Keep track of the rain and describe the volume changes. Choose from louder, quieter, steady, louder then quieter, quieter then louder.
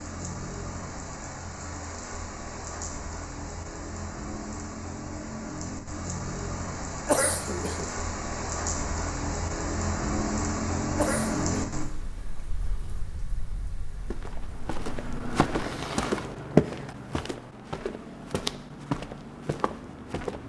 louder then quieter.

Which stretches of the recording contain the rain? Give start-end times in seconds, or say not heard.
0.0-16.1.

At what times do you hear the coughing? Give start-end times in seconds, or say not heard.
7.0-7.8, 10.9-11.4.